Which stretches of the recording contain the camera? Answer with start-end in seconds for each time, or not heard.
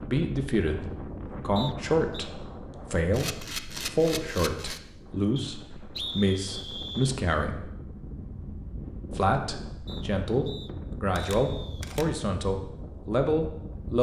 3.1-4.8, 11.2-12.1.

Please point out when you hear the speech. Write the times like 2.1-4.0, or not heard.
0.0-7.7, 9.1-13.9.